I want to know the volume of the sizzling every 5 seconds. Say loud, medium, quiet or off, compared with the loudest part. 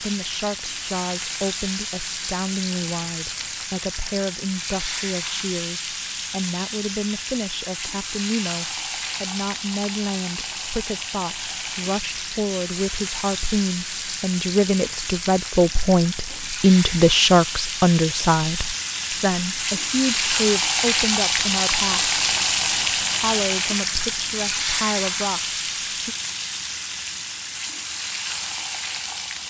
medium, medium, medium, medium, loud, medium.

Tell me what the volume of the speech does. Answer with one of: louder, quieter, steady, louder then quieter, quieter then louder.
louder then quieter.